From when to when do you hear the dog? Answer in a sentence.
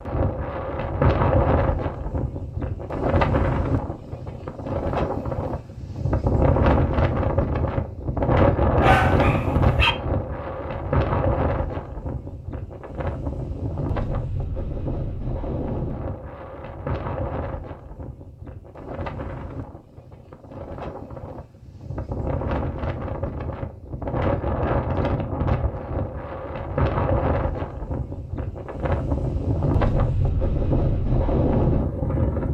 The dog can be heard from 8.8 to 9.9 s.